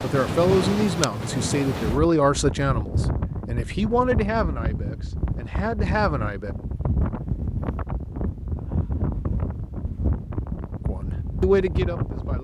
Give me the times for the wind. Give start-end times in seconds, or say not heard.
0.0-12.3.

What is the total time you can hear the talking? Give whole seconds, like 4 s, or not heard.
8 s.